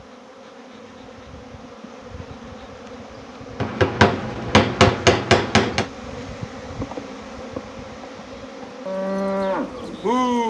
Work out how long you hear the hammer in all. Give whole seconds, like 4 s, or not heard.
2 s.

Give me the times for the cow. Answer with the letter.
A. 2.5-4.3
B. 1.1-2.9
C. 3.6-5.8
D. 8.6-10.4
D.